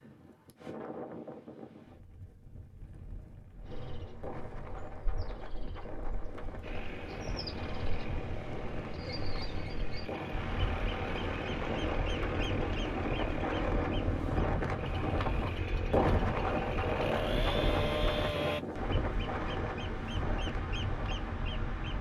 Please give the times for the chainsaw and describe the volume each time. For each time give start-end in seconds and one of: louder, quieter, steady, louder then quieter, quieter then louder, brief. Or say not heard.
6.6-18.6 louder.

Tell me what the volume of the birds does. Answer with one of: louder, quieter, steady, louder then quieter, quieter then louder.
louder.